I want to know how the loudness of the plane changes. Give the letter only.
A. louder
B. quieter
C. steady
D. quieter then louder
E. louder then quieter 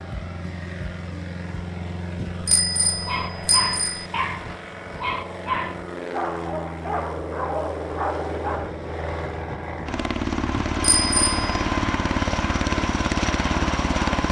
A.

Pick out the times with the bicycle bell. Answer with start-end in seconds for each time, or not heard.
2.1-4.0, 10.6-11.4.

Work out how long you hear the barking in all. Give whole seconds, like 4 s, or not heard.
6 s.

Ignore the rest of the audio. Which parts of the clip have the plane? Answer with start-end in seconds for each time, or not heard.
0.0-14.2.